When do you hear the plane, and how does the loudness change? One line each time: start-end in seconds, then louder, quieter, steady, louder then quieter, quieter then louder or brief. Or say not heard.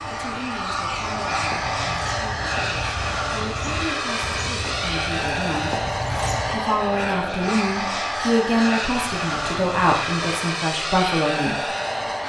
0.0-12.2 steady.